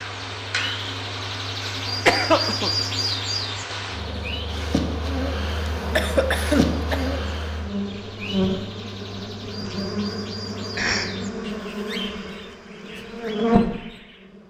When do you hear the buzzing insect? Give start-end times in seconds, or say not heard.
0.0-13.7.